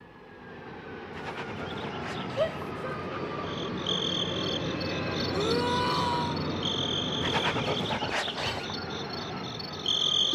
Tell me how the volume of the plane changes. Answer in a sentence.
The volume of the plane goes up, then down.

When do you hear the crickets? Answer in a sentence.
You can hear the crickets from 3.4 to 10.3 s.